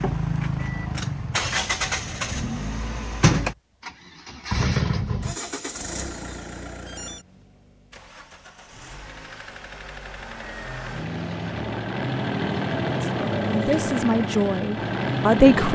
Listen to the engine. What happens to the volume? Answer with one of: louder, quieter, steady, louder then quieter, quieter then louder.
quieter then louder.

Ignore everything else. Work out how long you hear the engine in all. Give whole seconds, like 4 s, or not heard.
16 s.